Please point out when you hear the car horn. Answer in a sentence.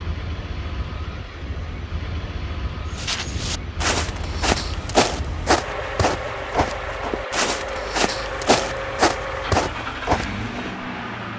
You can't hear the car horn here.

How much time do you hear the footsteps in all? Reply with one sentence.
You can hear the footsteps for 8 seconds altogether.